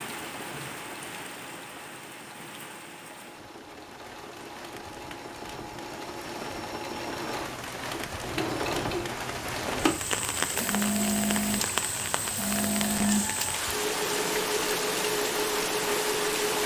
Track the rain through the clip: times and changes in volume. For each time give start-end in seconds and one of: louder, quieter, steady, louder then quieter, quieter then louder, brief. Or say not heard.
0.0-16.6 louder.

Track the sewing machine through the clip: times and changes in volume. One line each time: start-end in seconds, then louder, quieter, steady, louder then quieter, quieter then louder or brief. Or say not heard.
0.0-16.6 louder.